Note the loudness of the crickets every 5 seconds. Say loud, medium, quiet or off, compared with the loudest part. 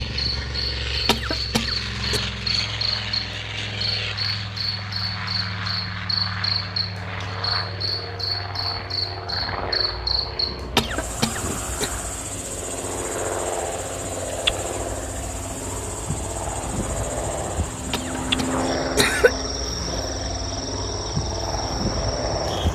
loud, loud, loud, medium, medium.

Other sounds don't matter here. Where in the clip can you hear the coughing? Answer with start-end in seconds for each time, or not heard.
1.1-2.2, 10.8-11.9, 17.9-19.4.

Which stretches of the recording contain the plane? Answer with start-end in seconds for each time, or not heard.
0.0-22.6.